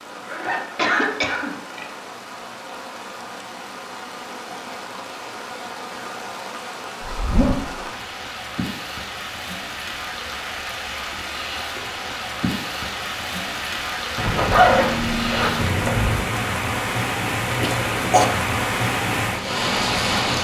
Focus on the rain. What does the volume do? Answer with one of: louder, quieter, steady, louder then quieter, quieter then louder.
louder.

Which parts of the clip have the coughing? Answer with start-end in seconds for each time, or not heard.
0.4-1.9, 17.6-18.2.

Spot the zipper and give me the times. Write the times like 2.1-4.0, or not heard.
0.2-1.9, 7.0-7.8, 14.2-16.2.